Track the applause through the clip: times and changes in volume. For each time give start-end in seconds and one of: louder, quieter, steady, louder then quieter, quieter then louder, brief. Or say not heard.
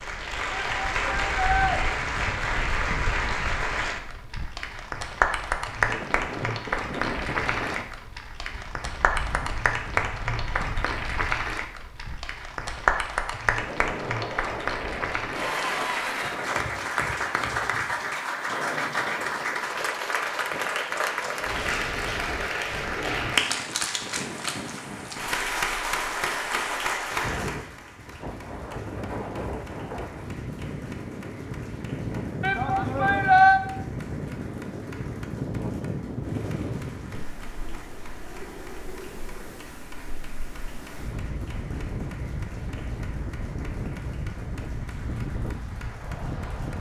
0.0-46.7 quieter.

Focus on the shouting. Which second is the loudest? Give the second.
33 s.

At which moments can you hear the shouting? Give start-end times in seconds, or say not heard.
0.5-1.8, 32.4-33.6.